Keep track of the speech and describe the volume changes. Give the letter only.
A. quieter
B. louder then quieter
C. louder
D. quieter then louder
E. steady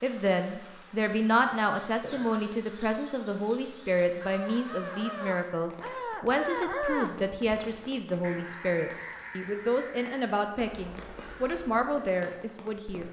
E.